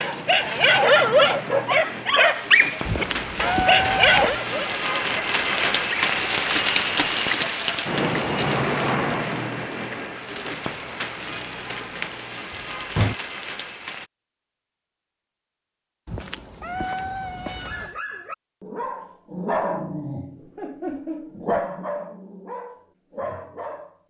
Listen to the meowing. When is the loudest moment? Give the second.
4 s.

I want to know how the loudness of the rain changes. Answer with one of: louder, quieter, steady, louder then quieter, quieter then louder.
louder then quieter.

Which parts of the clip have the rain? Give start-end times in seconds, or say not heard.
0.0-14.1.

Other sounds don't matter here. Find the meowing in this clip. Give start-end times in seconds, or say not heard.
2.9-4.4, 16.1-17.9.